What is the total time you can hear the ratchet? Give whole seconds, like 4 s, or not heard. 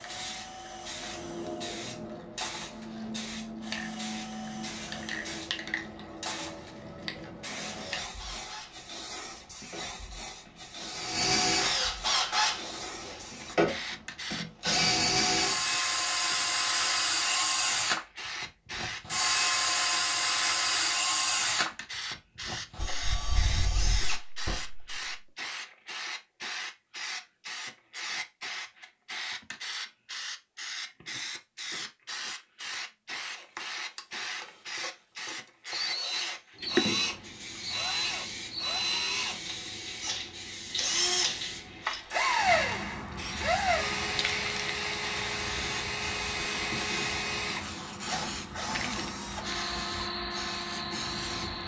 not heard.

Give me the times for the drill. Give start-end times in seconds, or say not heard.
0.0-25.1, 33.3-51.6.